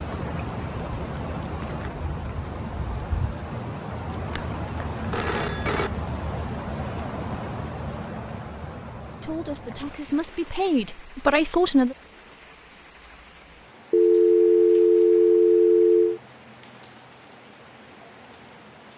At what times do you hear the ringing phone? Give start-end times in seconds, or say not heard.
4.3-5.9, 13.9-16.2.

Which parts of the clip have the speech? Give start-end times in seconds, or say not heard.
9.2-11.9.